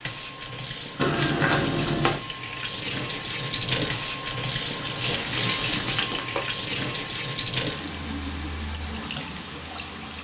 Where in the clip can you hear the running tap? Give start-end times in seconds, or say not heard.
0.0-10.1.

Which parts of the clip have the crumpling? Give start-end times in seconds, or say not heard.
0.9-2.2, 5.2-6.5.